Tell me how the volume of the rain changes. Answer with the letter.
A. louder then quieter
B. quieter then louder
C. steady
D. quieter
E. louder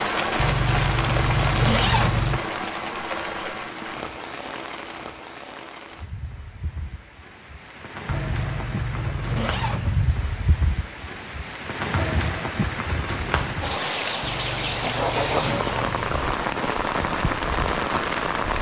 B.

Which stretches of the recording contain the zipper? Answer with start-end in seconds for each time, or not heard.
0.3-2.4, 8.1-10.1, 14.2-16.2.